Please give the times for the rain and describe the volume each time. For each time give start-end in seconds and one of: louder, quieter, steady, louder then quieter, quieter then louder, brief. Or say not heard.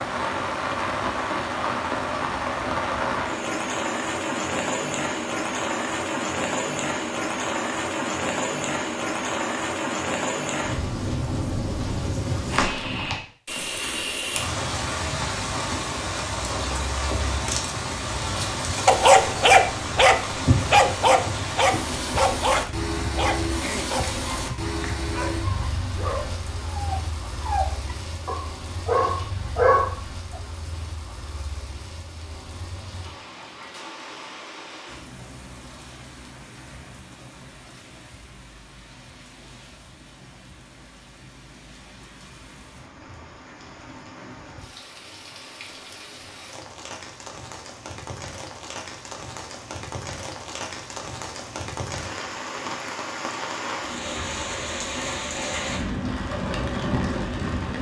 0.0-57.7 quieter then louder.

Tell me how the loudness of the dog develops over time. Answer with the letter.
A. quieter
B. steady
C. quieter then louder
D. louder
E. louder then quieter
C.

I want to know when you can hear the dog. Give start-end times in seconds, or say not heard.
18.9-30.4.